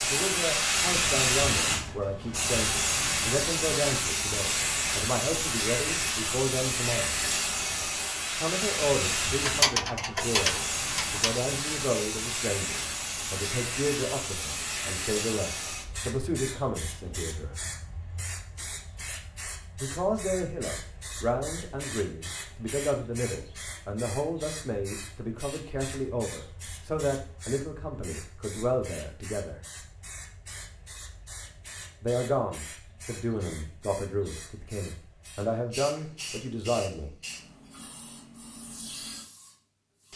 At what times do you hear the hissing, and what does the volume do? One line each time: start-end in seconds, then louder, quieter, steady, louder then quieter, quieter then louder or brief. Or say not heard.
0.0-40.1 quieter.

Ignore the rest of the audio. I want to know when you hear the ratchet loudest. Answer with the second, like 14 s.
10 s.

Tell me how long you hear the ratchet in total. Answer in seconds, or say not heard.
2 s.